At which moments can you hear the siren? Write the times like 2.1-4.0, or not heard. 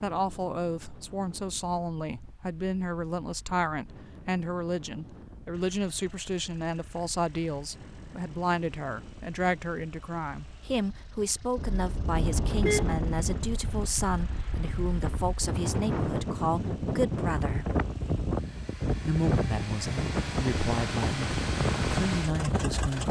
not heard.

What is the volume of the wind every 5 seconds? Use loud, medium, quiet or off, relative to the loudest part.
quiet, quiet, medium, loud, loud.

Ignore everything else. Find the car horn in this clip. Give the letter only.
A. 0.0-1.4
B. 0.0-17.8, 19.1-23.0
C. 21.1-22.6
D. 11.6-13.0
D.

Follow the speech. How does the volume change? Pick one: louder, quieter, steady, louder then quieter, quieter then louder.
steady.